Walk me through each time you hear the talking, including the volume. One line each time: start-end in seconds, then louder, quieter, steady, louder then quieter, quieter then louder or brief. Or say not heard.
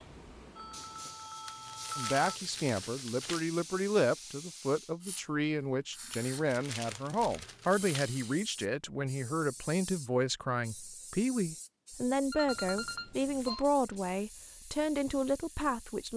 1.9-16.1 steady.